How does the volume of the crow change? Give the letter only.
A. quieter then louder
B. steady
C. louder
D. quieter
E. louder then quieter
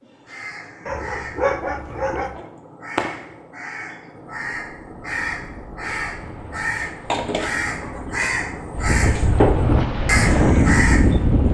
C.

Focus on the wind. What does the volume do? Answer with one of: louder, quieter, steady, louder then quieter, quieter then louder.
louder.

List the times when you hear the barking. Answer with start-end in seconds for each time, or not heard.
0.8-2.5.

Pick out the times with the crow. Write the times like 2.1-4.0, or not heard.
0.0-11.4.